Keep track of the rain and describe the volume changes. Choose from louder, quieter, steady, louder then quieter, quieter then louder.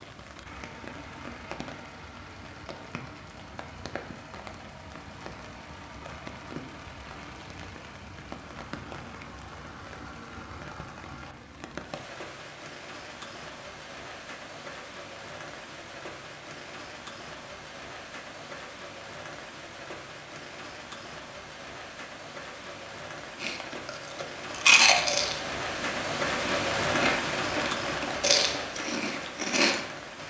louder.